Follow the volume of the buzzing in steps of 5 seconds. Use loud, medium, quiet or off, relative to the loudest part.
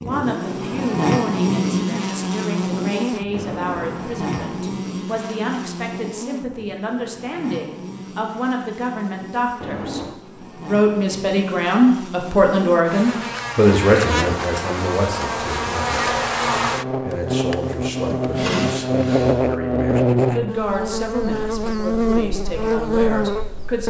loud, quiet, medium, loud, loud.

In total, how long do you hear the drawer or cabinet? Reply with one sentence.
You can hear the drawer or cabinet for 4 seconds altogether.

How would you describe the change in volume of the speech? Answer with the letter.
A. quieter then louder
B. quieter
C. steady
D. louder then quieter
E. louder
D.